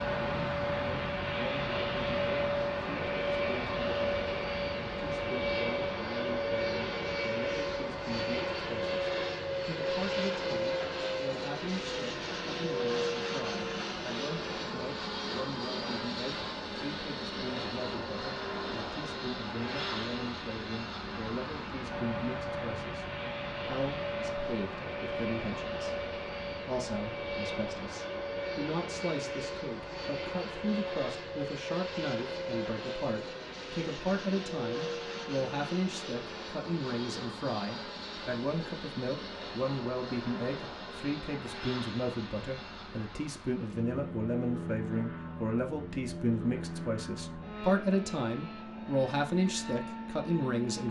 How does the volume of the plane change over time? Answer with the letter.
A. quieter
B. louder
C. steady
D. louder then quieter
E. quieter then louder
A.